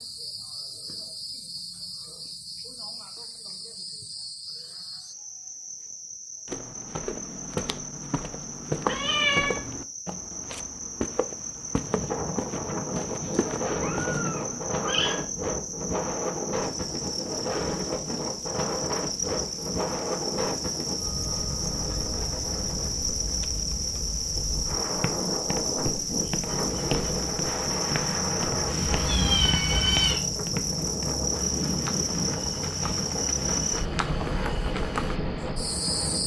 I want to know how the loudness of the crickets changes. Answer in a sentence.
The volume of the crickets goes up.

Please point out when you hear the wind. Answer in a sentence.
You can hear the wind from 11.8 to 36.2 s.